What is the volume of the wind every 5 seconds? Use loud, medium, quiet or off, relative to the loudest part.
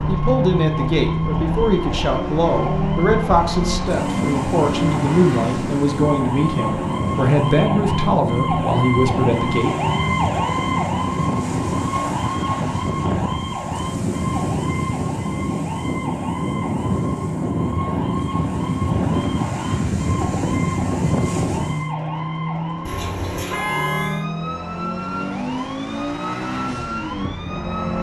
medium, loud, loud, loud, loud, off.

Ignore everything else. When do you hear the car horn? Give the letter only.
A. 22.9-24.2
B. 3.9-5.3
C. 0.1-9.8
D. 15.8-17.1
A.